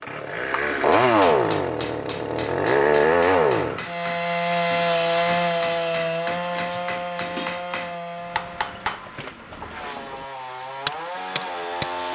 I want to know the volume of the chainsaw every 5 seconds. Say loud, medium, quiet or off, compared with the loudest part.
loud, medium, medium.